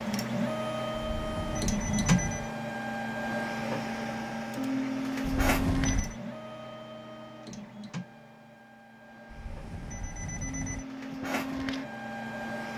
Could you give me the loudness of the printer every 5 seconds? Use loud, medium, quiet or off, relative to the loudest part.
loud, medium, medium.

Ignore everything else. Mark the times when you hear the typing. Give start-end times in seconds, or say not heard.
not heard.